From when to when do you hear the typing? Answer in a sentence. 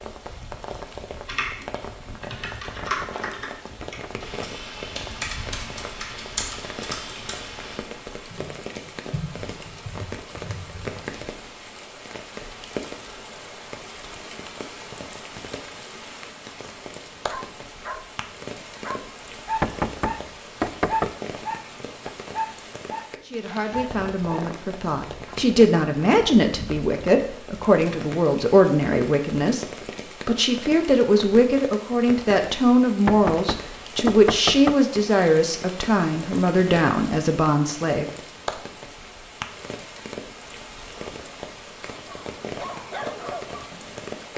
You can hear the typing from 1.2 to 11.1 s.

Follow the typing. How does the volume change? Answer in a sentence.
The loudness of the typing goes down.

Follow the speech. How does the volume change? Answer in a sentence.
The volume of the speech stays about the same.